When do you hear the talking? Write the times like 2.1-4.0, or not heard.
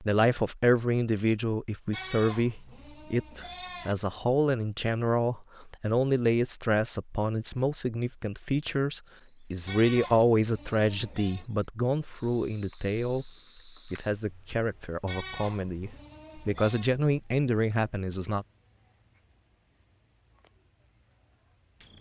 0.0-18.4.